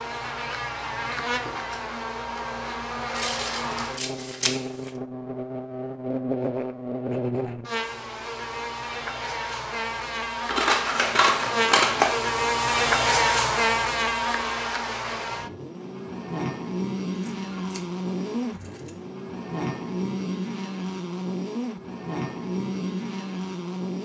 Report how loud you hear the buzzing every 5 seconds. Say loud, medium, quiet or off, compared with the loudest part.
medium, medium, loud, medium, medium.